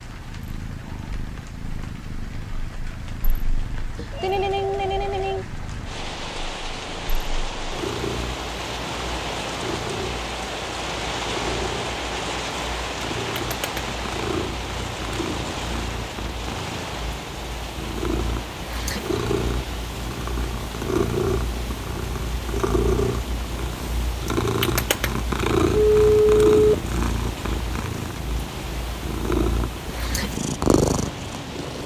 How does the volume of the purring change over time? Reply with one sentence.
The loudness of the purring goes up.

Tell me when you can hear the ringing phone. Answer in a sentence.
The ringing phone can be heard from 4.0 to 5.5 s and from 25.7 to 26.9 s.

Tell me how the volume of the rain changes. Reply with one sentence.
The loudness of the rain goes up, then down.